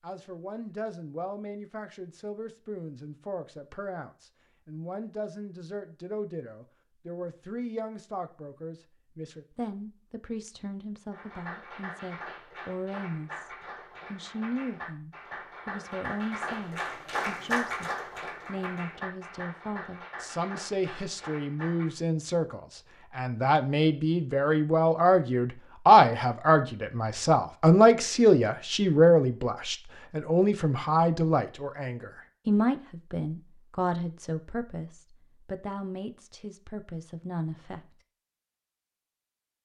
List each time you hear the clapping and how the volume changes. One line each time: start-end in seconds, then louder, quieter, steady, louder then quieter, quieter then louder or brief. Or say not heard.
11.1-21.9 louder then quieter.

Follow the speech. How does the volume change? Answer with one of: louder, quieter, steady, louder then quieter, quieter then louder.
louder then quieter.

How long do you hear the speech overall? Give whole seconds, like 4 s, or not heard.
37 s.